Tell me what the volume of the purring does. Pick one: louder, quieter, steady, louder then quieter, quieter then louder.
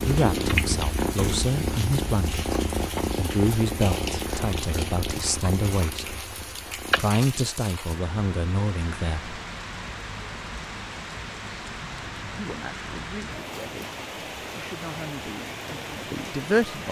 quieter.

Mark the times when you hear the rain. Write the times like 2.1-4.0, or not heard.
0.0-16.8.